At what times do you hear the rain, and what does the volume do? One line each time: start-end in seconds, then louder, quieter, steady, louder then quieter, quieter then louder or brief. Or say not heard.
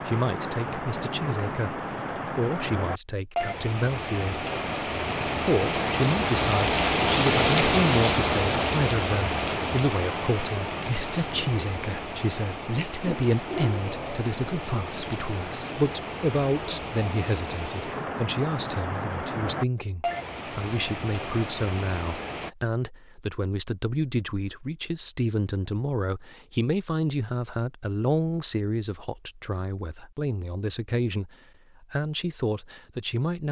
0.0-22.5 louder then quieter.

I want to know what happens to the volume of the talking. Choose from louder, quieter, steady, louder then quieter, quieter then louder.
steady.